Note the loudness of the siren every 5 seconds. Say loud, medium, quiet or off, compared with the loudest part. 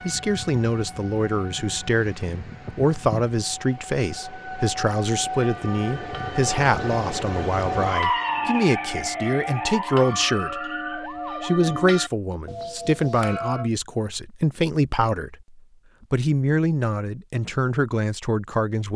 medium, loud, medium, off.